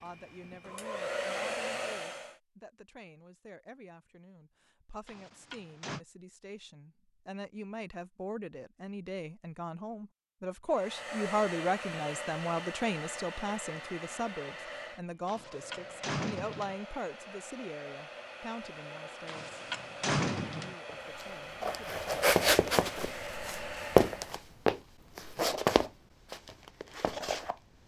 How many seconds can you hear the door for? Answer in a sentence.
You can hear the door for 4 seconds altogether.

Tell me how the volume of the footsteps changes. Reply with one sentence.
The volume of the footsteps goes down.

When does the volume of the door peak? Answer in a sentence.
The loudest moment of the door is at 20 seconds.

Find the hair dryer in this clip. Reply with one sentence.
The hair dryer can be heard from 0.0 to 2.4 s and from 10.7 to 24.4 s.